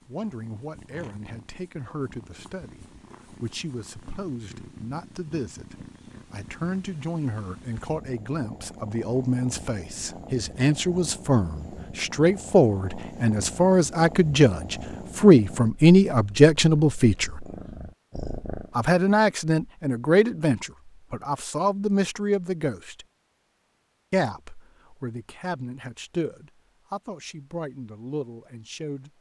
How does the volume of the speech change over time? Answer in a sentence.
The loudness of the speech goes up, then down.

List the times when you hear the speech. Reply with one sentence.
You can hear the speech from 0.1 to 17.3 s, from 18.8 to 23.1 s and from 24.1 to 29.1 s.